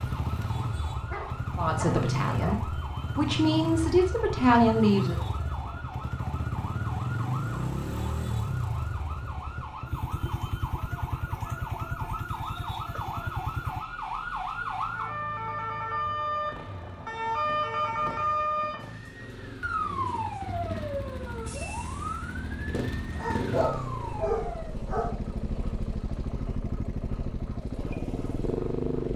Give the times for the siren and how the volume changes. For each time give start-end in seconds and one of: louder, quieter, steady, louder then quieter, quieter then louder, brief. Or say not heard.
0.0-29.1 louder then quieter.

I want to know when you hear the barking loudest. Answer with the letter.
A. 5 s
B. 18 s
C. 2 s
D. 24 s
D.